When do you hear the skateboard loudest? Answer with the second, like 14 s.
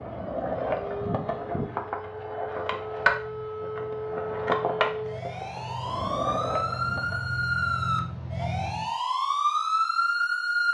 3 s.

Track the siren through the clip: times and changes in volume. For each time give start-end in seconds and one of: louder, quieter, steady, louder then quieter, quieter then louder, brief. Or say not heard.
0.0-10.6 louder.